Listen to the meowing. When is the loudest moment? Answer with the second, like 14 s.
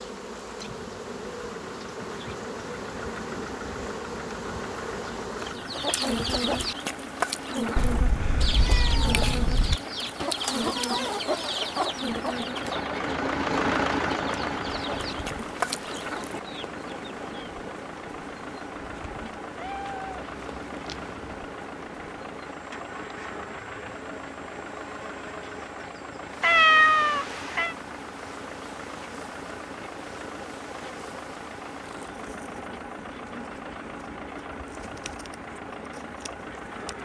27 s.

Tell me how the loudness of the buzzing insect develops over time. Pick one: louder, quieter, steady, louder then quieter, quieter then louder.
quieter.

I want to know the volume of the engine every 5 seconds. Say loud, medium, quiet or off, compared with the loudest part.
medium, medium, loud, medium, medium, medium, medium, medium.